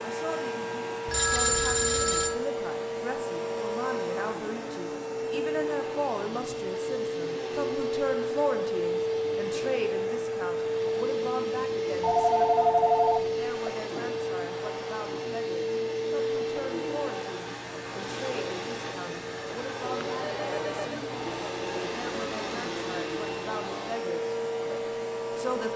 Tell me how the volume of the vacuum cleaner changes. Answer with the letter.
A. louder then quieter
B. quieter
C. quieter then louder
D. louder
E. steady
E.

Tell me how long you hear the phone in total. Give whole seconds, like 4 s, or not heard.
4 s.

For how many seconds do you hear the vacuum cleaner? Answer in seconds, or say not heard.
26 s.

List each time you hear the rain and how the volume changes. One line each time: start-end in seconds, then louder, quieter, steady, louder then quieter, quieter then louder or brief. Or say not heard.
not heard.